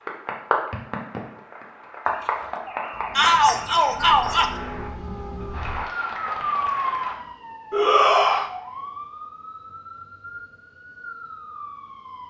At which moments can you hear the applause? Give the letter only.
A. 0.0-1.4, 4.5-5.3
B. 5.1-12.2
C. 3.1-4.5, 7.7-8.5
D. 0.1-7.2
D.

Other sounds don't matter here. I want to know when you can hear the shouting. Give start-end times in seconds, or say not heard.
3.1-4.5, 7.7-8.5.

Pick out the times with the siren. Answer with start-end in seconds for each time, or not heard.
2.0-12.2.